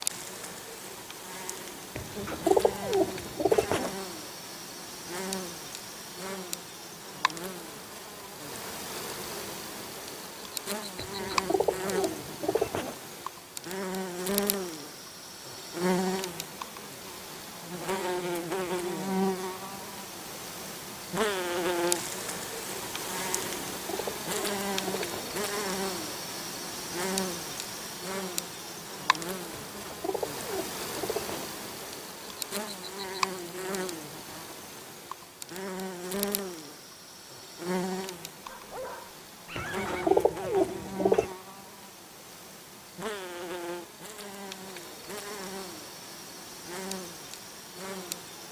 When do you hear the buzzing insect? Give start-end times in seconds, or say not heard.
0.0-48.4.